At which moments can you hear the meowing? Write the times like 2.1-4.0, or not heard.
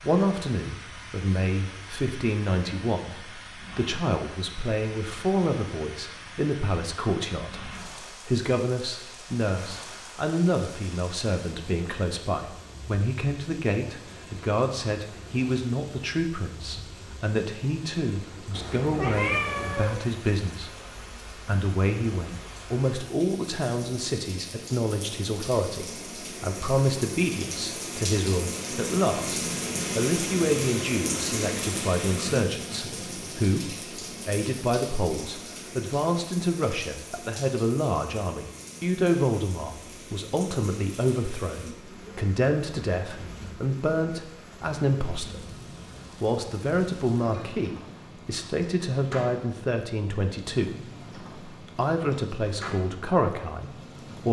18.5-20.1.